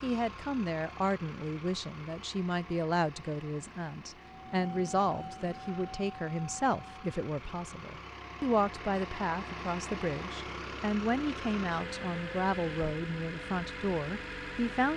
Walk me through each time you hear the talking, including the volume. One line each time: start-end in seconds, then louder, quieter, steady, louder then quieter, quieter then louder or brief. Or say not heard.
0.0-14.9 steady.